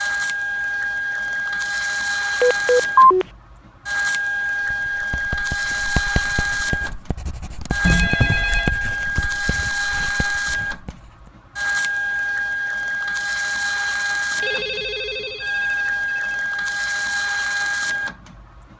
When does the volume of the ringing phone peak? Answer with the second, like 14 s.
3 s.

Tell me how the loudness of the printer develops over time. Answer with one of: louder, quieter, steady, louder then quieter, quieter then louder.
steady.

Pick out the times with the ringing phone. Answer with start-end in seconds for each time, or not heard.
2.4-3.2, 7.8-8.7, 14.4-16.1.